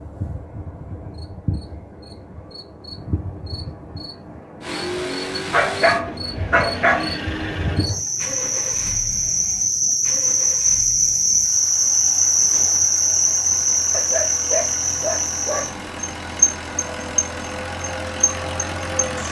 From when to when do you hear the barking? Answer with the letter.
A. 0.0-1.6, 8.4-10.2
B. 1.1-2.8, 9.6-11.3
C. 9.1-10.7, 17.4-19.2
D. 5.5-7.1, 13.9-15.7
D.